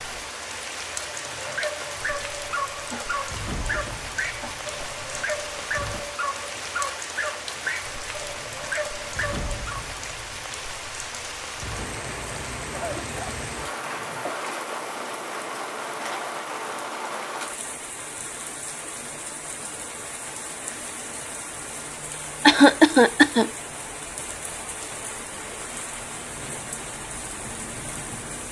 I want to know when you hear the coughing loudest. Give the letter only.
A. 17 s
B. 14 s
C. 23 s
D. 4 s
C.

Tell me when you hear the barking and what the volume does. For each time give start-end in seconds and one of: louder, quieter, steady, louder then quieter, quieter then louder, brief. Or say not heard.
1.0-9.8 steady.